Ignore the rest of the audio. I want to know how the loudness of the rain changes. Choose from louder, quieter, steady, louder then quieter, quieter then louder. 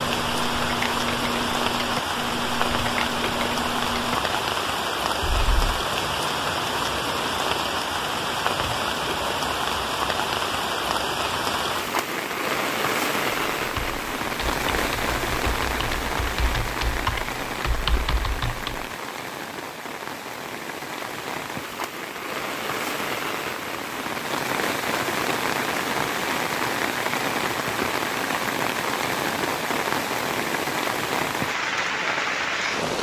steady.